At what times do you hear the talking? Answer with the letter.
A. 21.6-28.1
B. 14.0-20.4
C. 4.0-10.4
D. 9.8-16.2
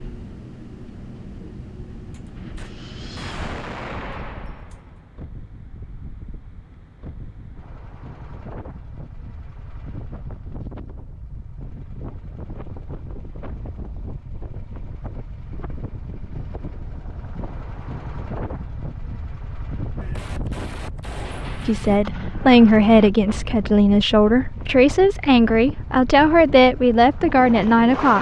A.